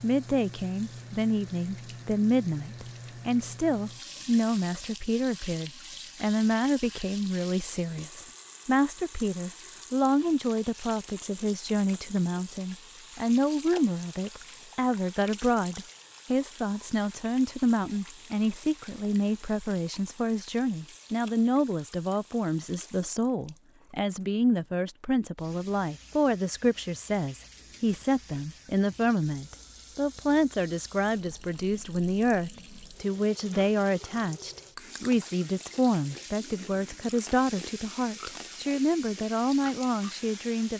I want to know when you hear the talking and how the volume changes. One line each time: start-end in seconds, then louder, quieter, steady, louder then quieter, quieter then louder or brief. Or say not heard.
0.0-40.7 steady.